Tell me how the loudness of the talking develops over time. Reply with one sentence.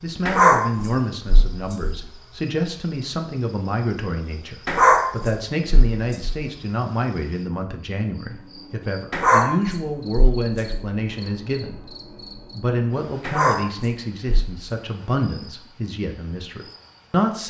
The loudness of the talking stays about the same.